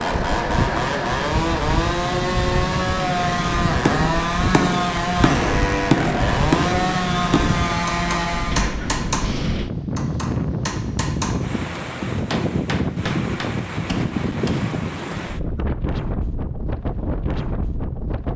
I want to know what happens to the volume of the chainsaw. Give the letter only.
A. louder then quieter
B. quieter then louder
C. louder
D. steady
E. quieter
D.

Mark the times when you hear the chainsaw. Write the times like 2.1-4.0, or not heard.
0.0-8.8.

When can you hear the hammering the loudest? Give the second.
6 s.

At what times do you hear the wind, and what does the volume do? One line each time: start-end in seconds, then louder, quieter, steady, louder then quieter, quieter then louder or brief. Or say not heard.
0.0-18.3 steady.